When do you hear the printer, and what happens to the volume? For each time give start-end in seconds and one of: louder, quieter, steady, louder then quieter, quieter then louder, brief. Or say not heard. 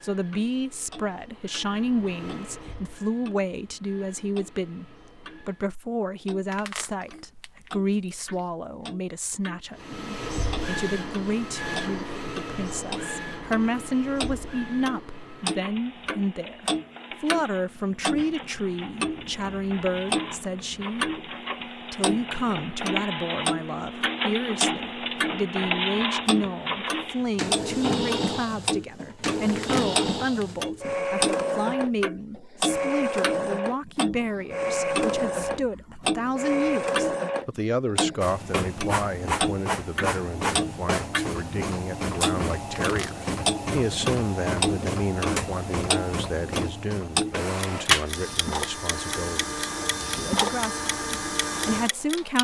0.0-5.8 louder then quieter
9.8-52.3 louder.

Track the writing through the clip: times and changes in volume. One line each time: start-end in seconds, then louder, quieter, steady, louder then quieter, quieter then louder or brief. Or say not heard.
not heard.